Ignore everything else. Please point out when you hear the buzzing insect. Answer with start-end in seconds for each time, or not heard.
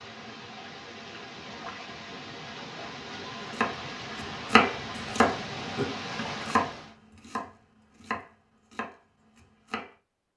not heard.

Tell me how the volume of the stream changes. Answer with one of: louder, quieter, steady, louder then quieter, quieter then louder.
louder.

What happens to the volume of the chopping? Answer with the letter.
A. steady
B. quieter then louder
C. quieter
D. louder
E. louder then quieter
C.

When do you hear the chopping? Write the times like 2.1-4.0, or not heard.
3.5-9.9.